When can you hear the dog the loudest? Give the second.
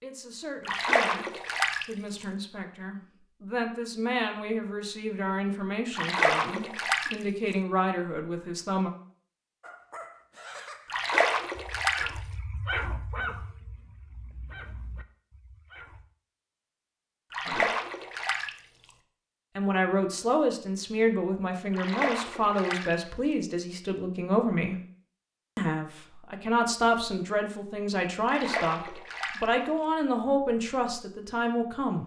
13 s.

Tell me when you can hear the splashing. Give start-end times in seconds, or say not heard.
0.7-1.9, 5.9-7.2, 10.8-12.1, 17.3-18.5, 21.7-22.9, 28.2-29.4.